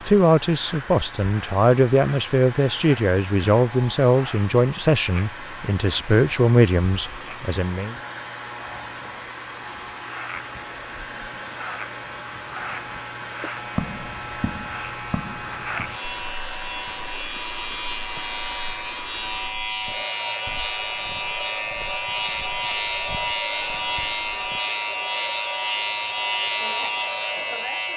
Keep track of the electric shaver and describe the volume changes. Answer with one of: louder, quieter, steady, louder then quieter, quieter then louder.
louder.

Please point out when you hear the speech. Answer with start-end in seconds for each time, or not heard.
0.1-8.0.